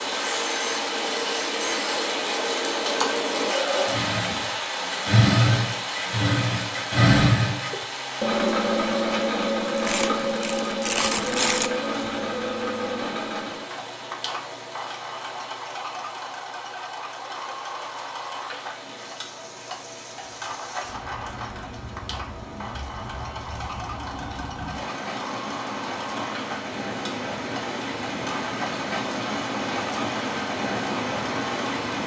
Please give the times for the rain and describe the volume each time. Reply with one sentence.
You can hear the rain from 0.0 to 32.0 s, getting quieter then louder.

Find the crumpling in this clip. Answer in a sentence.
You can hear the crumpling from 9.7 to 11.7 s.